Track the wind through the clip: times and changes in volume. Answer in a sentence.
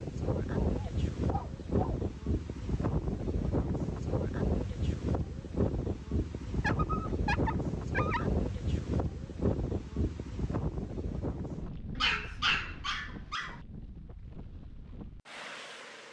You can hear the wind from 0.0 to 16.0 s, getting quieter.